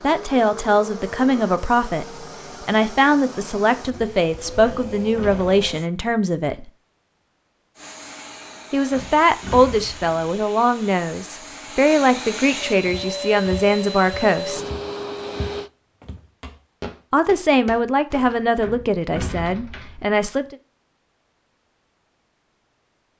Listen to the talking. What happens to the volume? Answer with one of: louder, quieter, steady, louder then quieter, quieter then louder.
steady.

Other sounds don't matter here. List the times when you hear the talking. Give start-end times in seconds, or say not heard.
0.0-6.7, 8.7-14.7, 17.1-20.6.